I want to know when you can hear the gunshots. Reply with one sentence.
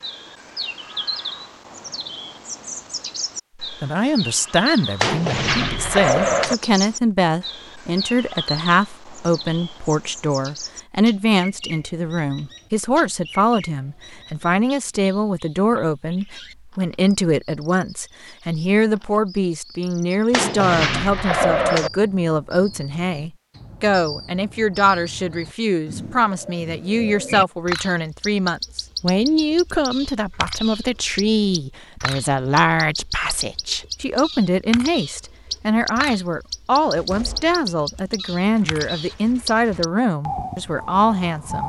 The gunshots can be heard from 5.0 to 6.5 s, from 20.3 to 21.9 s and from 37.0 to 40.0 s.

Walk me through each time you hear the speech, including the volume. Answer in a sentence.
You can hear the speech from 3.6 to 41.6 s, at a steady volume.